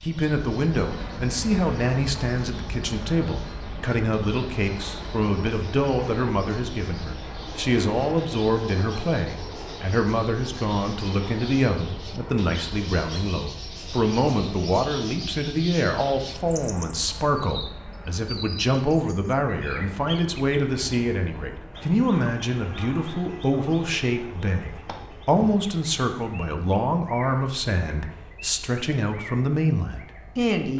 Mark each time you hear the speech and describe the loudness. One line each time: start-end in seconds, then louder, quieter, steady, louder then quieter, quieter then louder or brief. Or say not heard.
0.0-30.7 steady.